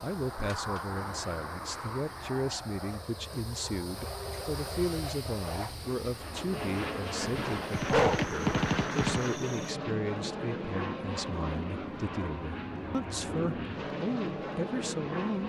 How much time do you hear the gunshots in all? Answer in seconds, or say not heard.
2 s.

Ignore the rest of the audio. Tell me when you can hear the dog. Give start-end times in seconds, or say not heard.
7.2-8.3.